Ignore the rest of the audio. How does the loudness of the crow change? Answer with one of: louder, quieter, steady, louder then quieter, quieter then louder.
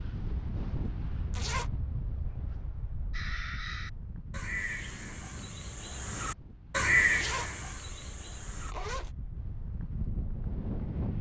louder then quieter.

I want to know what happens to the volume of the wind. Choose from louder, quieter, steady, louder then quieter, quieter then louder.
quieter then louder.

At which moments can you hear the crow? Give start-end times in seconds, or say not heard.
3.1-8.8.